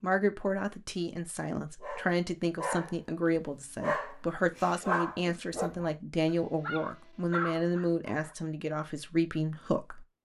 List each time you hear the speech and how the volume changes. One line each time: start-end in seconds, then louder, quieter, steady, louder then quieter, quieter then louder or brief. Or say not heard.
0.0-10.1 steady.